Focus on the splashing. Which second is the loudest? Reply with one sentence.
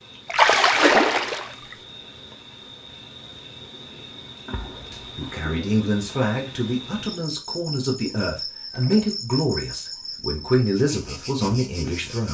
The loudest moment of the splashing is at 1 second.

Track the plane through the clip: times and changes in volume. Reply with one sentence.
The plane can't be heard in this clip.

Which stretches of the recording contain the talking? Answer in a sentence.
The talking can be heard from 5.2 to 12.2 s.